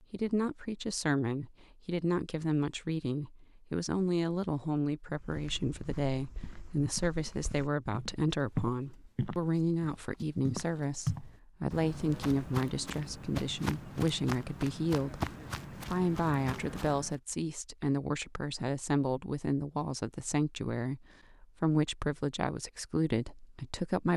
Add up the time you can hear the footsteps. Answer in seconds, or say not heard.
12 s.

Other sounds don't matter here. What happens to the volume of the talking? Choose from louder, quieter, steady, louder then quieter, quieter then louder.
steady.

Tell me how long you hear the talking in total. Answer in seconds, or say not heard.
24 s.